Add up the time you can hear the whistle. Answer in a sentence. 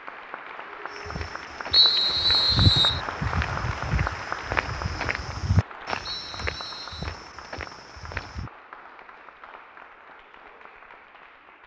You can hear the whistle for 2 seconds altogether.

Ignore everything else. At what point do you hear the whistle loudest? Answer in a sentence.
The loudest moment of the whistle is at 2 seconds.